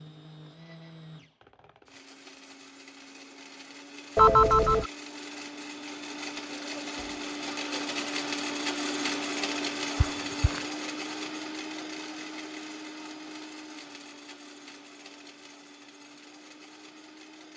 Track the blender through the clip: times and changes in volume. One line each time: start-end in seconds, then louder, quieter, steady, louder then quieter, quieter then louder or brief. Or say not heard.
0.0-17.5 louder then quieter.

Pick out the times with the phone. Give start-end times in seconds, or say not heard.
4.2-4.9, 9.9-10.7.